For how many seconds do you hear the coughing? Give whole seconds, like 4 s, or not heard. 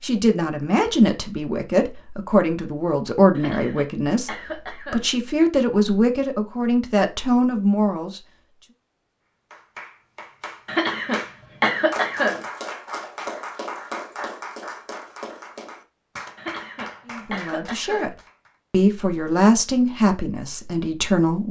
5 s.